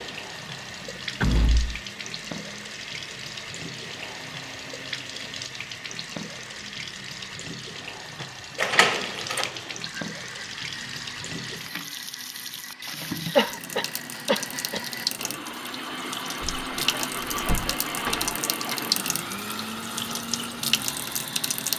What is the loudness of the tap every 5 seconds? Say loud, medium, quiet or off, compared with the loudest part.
medium, medium, medium, loud, loud.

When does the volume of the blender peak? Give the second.
18 s.